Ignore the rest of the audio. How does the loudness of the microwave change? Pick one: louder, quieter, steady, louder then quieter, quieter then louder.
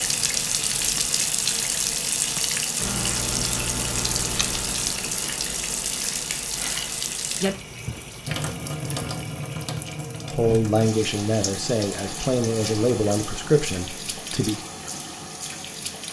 quieter.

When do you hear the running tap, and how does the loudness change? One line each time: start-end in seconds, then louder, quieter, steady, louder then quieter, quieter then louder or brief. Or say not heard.
0.0-16.0 quieter.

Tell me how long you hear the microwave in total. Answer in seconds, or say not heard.
6 s.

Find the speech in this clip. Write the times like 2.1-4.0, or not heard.
10.2-14.7.